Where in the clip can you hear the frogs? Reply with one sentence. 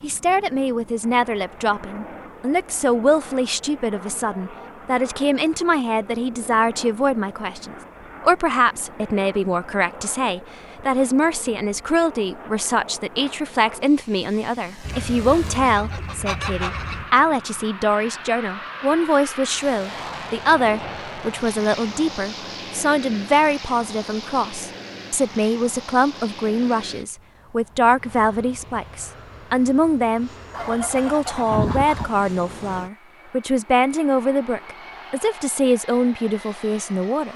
You can't hear the frogs here.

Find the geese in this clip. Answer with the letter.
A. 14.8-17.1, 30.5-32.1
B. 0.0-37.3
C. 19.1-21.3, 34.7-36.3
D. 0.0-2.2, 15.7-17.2
A.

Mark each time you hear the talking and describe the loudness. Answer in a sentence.
You can hear the talking from 0.0 to 37.3 s, at a steady volume.